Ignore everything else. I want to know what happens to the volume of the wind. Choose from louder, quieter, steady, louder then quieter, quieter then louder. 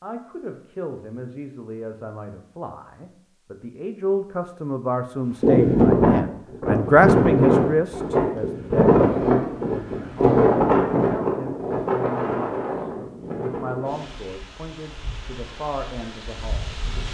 quieter.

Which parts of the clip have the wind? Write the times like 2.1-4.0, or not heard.
5.4-17.0.